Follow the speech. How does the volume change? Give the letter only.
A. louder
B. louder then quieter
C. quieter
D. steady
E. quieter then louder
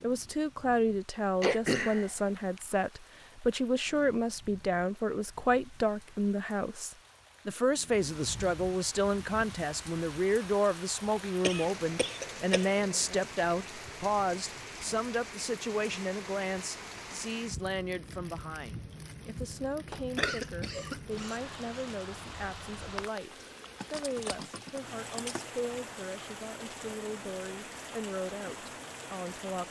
C.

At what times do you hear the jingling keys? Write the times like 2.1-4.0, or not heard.
23.8-25.6.